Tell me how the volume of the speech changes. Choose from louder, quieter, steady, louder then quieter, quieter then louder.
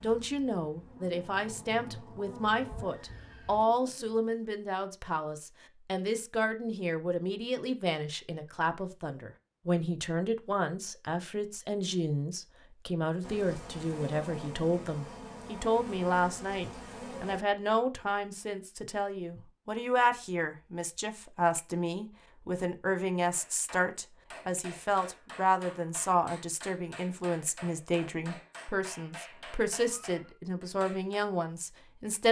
steady.